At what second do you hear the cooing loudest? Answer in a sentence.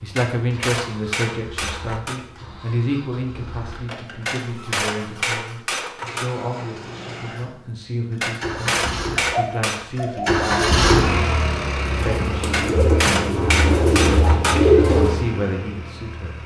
The volume of the cooing peaks at 15 seconds.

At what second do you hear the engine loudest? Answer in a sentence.
The volume of the engine peaks at 11 seconds.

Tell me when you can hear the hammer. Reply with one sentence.
The hammer can be heard from 0.1 to 2.2 s, from 4.2 to 6.3 s, from 8.2 to 9.8 s and from 12.5 to 14.7 s.